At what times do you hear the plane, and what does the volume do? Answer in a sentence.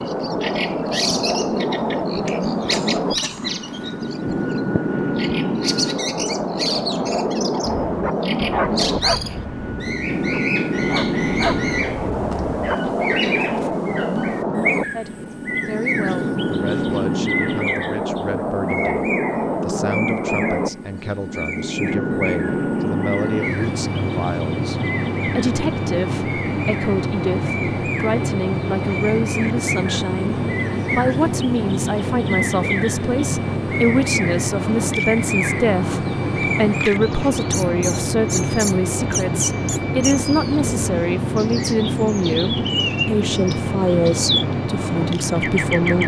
The plane can be heard from 0.0 to 46.0 s, at a steady volume.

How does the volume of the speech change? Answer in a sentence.
The volume of the speech goes up.